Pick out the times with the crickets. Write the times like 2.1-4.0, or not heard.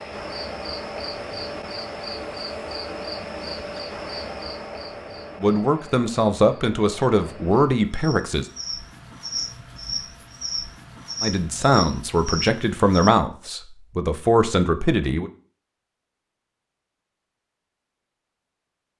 0.0-13.1.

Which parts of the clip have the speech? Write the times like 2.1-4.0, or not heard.
5.4-8.4, 11.2-15.3.